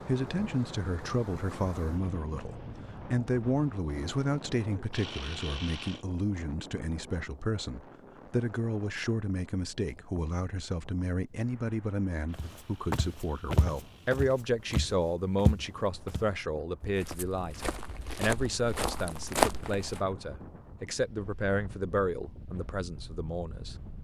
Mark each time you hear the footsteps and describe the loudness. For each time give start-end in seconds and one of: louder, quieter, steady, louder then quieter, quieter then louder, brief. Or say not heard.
12.3-20.0 quieter then louder.